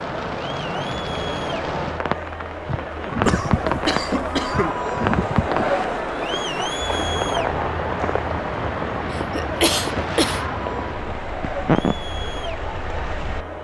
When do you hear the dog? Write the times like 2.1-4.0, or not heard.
not heard.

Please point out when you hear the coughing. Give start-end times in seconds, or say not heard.
3.2-4.8, 9.1-10.4.